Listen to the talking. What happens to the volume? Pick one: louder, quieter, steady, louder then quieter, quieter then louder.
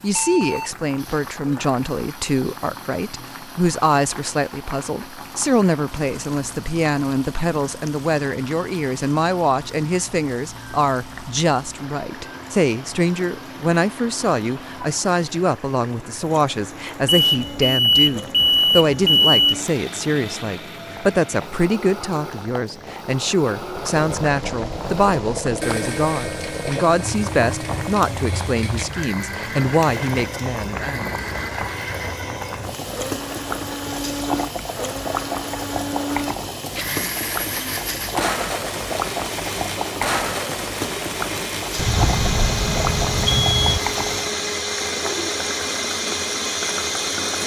steady.